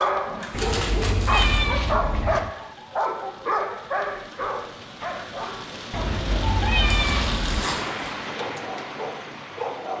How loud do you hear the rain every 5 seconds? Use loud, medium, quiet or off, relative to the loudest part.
quiet, loud.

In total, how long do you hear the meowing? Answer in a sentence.
You can hear the meowing for 4 seconds altogether.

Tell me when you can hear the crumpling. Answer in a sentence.
The crumpling can be heard from 0.4 to 1.7 s and from 6.8 to 8.1 s.